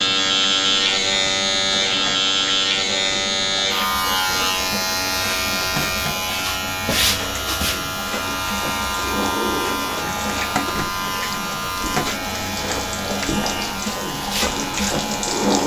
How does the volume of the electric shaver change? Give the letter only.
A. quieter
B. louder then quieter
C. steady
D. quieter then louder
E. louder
A.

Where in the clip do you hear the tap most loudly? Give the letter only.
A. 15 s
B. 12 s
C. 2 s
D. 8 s
A.